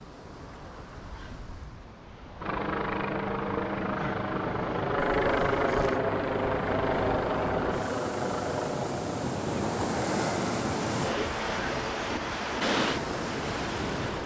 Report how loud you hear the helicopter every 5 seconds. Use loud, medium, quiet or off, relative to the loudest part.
loud, loud, medium.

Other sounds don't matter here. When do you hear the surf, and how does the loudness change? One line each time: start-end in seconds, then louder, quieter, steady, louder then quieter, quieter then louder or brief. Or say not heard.
0.0-14.2 louder.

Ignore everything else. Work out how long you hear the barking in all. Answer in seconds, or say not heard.
not heard.